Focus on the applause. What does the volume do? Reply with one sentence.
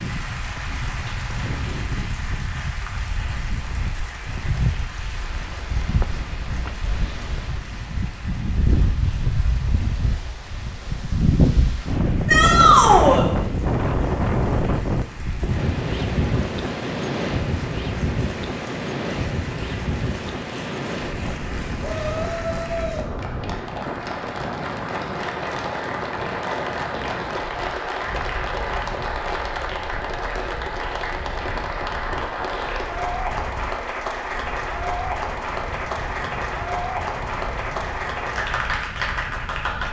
The volume of the applause goes down, then up.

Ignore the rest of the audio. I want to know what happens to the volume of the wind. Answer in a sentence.
The loudness of the wind goes up, then down.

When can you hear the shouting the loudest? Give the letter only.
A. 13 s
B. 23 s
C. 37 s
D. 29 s
A.